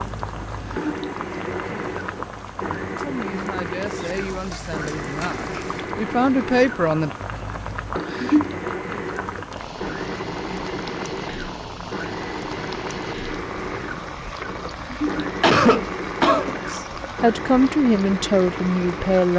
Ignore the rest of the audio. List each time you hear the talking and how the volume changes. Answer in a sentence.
The talking can be heard from 3.0 to 7.1 s, getting louder; and briefly from 16.6 to 19.3 s.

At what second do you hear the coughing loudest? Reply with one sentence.
The loudest moment of the coughing is at 16 seconds.